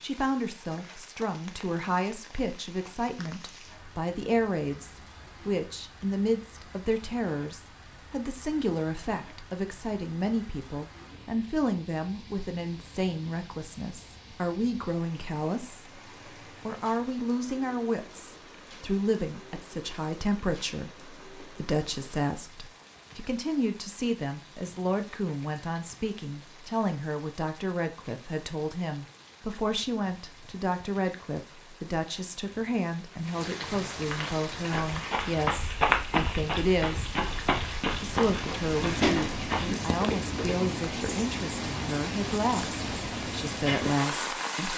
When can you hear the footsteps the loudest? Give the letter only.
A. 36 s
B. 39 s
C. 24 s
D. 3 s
A.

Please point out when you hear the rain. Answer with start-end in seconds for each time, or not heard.
0.0-44.7.